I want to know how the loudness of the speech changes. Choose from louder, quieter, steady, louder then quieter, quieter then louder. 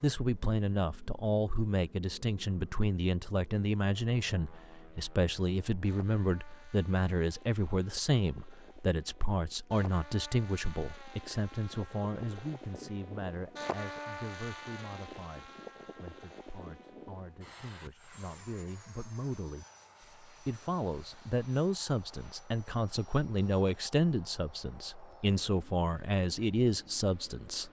quieter then louder.